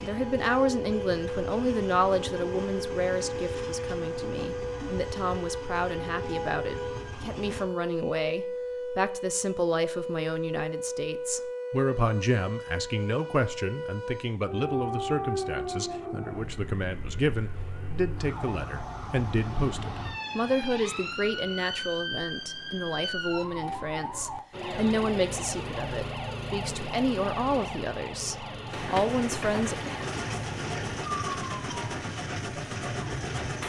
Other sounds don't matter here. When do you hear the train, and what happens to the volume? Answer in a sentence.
The train can be heard from 0.0 to 7.7 s, at a steady volume; and from 28.6 to 33.6 s, at a steady volume.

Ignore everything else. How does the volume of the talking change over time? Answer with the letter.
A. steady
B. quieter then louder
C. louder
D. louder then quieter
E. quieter
A.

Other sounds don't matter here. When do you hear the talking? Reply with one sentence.
You can hear the talking from 0.0 to 29.8 s.